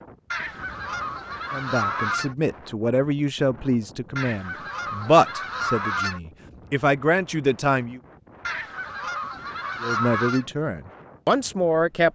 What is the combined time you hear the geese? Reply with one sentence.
The geese can be heard for 6 seconds in total.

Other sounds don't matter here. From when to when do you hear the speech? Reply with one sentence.
The speech can be heard from 1.5 to 8.0 s and from 9.8 to 12.1 s.